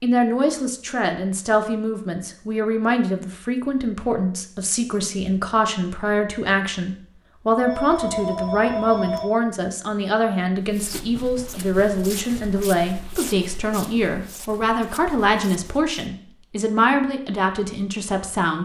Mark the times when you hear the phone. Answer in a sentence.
The phone can be heard from 7.6 to 9.2 s.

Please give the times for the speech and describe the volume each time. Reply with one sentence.
You can hear the speech from 0.0 to 18.5 s, at a steady volume.